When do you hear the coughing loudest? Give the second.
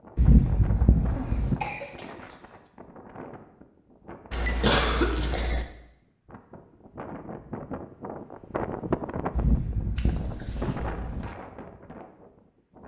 5 s.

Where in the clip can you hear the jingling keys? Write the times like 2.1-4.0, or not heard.
0.1-1.6, 4.3-5.7, 9.3-11.3.